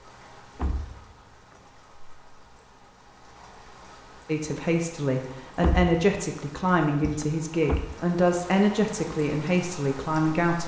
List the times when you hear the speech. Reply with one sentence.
The speech can be heard from 4.2 to 10.6 s.